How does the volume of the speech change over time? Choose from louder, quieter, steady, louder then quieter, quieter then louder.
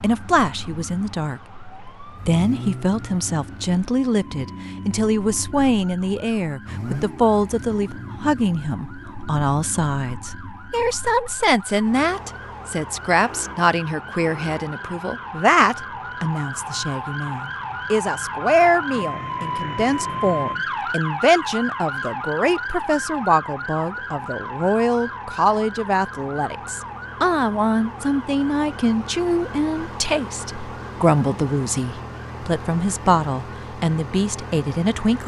steady.